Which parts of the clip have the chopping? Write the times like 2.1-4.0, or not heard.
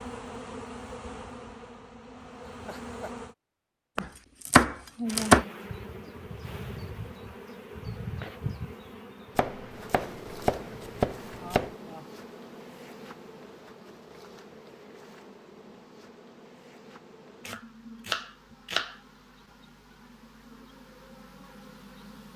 4.0-5.5, 9.3-11.7, 17.4-18.9.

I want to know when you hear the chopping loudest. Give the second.
5 s.